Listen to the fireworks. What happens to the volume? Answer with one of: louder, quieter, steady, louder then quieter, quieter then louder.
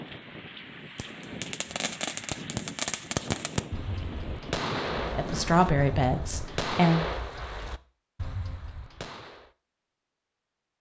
quieter.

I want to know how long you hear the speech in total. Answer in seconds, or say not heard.
2 s.